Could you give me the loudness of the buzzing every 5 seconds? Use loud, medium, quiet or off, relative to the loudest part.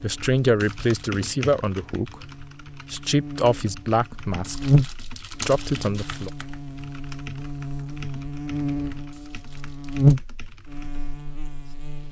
medium, medium, loud.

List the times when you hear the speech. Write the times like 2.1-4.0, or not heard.
0.0-2.3, 2.9-4.7, 5.5-6.3.